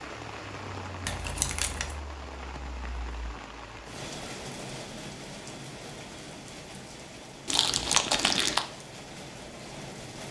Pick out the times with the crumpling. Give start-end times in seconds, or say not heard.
1.1-1.9, 7.5-8.7.